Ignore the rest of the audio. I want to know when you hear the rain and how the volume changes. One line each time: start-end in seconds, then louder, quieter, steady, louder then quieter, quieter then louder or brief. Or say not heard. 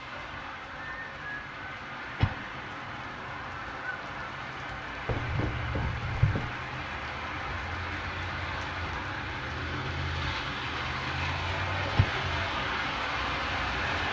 0.0-14.0 louder.